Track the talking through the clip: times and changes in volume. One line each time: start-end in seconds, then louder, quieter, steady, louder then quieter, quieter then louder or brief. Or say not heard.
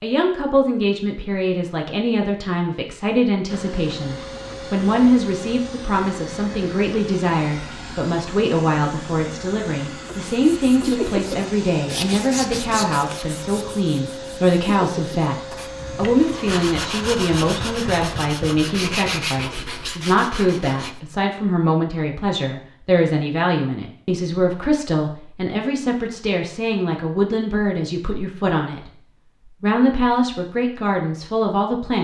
0.0-31.9 steady.